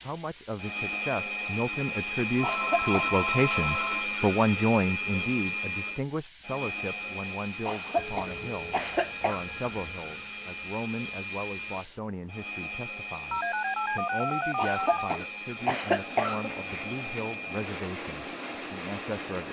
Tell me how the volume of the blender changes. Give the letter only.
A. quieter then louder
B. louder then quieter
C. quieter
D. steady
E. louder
C.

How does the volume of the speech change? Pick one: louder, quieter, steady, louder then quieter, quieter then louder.
quieter.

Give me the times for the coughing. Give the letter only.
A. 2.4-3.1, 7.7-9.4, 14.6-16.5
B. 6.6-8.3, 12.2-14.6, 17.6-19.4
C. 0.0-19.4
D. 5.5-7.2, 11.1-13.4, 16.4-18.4
A.